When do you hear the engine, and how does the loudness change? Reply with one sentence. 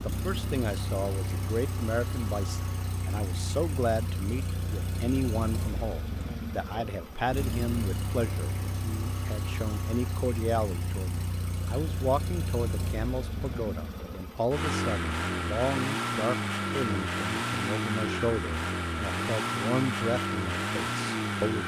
The engine can be heard from 0.0 to 21.6 s, getting louder.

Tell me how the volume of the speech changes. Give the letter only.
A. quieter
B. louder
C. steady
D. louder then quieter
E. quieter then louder
C.